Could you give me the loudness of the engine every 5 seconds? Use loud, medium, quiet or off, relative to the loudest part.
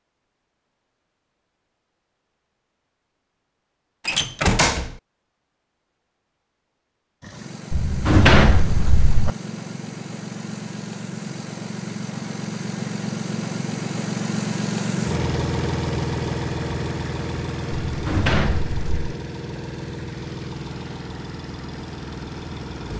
off, medium, loud, loud, medium.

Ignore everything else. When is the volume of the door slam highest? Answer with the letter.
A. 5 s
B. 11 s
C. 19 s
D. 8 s
D.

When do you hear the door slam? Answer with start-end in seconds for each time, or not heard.
4.0-5.0, 7.7-9.3, 17.9-19.1.